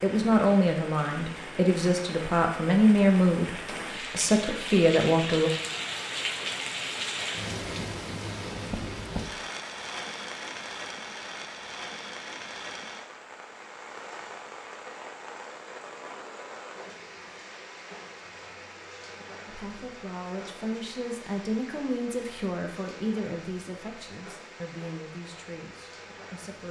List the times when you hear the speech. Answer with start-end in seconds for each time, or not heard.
0.0-5.5, 19.4-26.6.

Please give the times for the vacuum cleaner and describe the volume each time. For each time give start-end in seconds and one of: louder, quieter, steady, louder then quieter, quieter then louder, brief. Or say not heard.
not heard.